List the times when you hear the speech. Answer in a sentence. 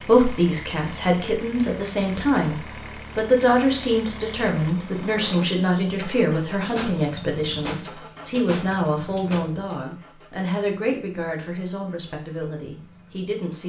You can hear the speech from 0.0 to 13.6 s.